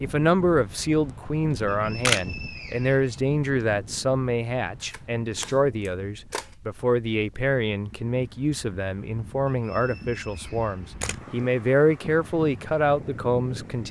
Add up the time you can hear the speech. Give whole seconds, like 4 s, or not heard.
14 s.